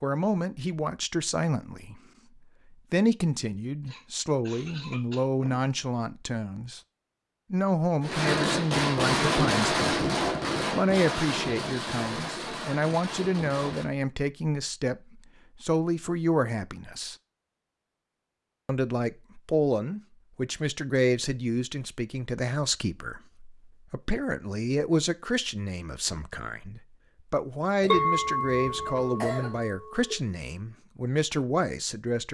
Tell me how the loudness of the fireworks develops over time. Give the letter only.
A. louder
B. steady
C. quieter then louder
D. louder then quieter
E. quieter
E.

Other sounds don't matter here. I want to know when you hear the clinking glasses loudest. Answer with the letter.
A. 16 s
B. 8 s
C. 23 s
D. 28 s
D.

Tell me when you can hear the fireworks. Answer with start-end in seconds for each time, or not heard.
8.0-13.8.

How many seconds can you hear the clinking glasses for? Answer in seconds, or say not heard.
2 s.